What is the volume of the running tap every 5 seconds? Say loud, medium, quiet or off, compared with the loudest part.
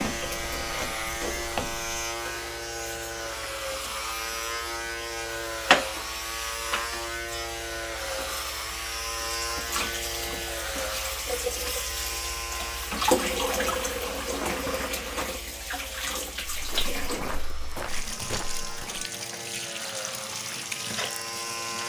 medium, loud, loud, medium, medium.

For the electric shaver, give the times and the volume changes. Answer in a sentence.
You can hear the electric shaver from 0.0 to 21.8 s, getting quieter.